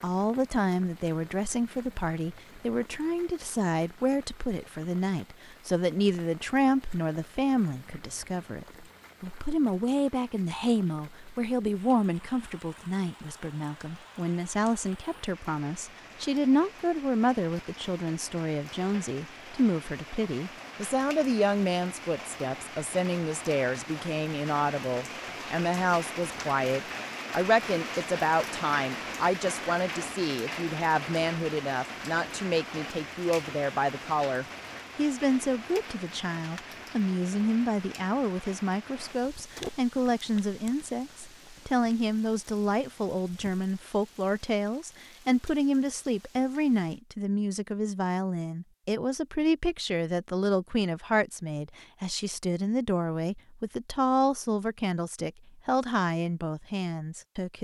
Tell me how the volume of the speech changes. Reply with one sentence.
The loudness of the speech stays about the same.